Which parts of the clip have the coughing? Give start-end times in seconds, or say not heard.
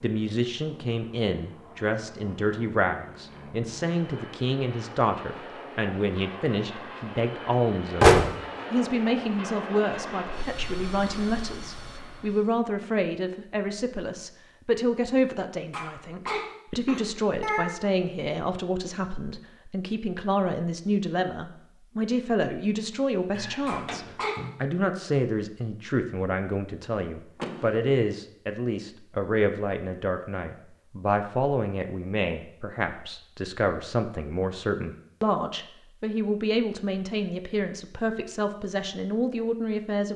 15.7-17.6, 23.6-24.4.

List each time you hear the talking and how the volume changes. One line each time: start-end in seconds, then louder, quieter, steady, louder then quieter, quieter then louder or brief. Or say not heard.
0.0-40.1 steady.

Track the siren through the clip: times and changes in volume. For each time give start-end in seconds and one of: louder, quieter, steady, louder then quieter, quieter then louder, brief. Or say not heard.
not heard.